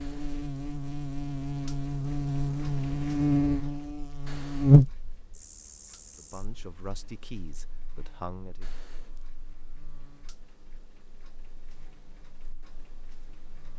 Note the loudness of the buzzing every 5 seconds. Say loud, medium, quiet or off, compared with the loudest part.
loud, quiet, quiet.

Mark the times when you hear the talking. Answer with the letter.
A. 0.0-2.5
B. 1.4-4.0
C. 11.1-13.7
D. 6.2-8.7
D.